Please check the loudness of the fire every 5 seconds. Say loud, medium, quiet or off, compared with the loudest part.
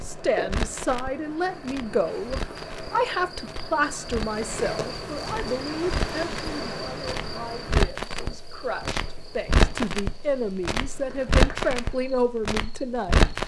medium, loud, loud.